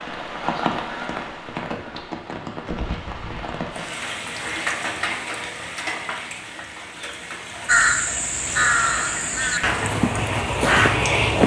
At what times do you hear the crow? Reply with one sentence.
You can hear the crow from 7.7 to 11.4 s.